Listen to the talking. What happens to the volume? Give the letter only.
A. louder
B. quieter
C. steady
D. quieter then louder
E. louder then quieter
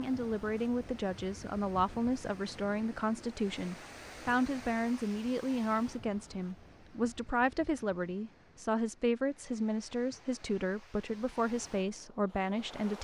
C.